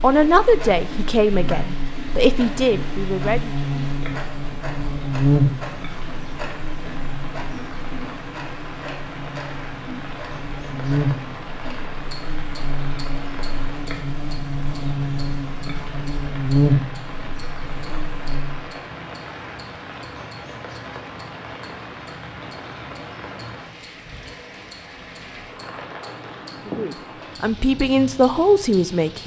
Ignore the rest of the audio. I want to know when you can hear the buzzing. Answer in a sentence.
You can hear the buzzing from 0.0 to 18.6 s.